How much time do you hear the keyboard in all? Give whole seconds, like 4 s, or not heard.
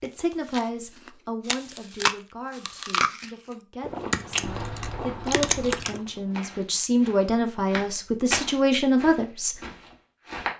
2 s.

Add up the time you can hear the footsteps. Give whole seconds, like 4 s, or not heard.
6 s.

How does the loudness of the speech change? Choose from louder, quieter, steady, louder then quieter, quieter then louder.
quieter then louder.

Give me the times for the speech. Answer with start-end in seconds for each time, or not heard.
0.0-9.6.